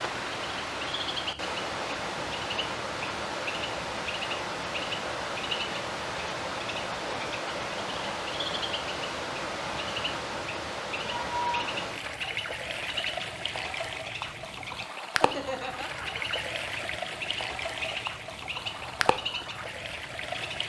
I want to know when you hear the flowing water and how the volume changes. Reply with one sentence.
You can hear the flowing water from 0.0 to 20.6 s, at a steady volume.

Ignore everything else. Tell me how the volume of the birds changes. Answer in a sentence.
The loudness of the birds stays about the same.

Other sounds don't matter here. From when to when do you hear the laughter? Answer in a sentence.
The laughter can be heard from 15.1 to 16.2 s.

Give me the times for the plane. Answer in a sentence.
The plane can't be heard in this clip.